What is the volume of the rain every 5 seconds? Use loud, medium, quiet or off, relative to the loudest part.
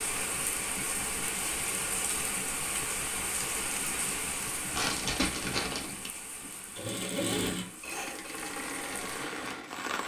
loud, medium.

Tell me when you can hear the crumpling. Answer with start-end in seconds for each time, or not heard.
4.7-6.1.